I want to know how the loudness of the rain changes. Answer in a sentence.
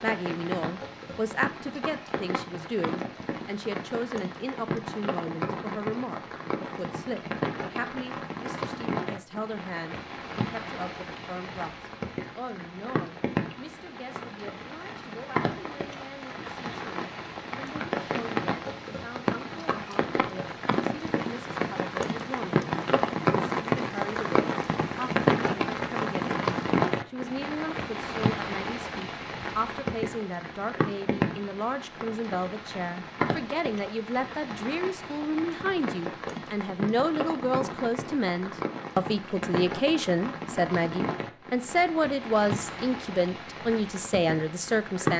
The loudness of the rain goes up, then down.